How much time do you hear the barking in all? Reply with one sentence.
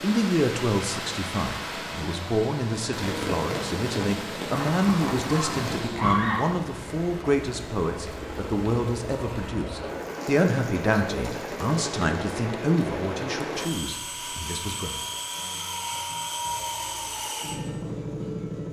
You can hear the barking for 2 seconds altogether.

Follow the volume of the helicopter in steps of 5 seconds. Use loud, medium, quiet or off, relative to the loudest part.
medium, medium, loud, loud.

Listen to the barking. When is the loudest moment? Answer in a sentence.
The loudest moment of the barking is at 6 seconds.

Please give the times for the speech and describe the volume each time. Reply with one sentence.
You can hear the speech from 0.0 to 15.0 s, at a steady volume.